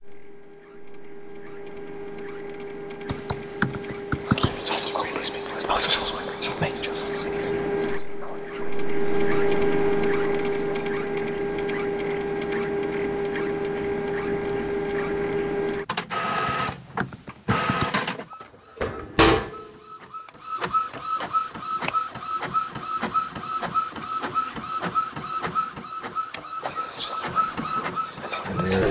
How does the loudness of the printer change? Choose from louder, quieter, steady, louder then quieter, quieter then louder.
louder.